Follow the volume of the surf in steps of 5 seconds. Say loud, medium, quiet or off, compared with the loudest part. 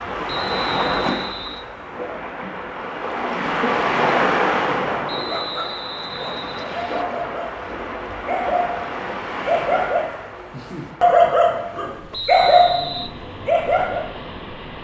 loud, medium, quiet.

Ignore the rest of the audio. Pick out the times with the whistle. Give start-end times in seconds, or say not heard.
0.2-1.6, 5.0-7.0, 12.1-13.1.